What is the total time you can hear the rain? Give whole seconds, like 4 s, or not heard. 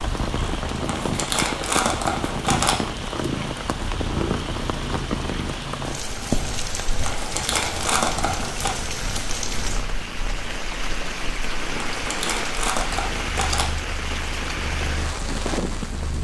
16 s.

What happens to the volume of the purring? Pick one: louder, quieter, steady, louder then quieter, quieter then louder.
quieter.